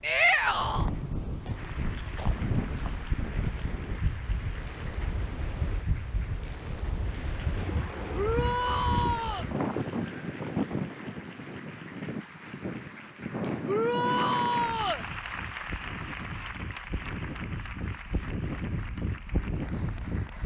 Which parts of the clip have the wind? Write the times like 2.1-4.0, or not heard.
0.0-20.4.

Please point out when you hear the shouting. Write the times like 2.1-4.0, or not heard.
0.0-0.8, 8.1-9.4, 13.7-15.1.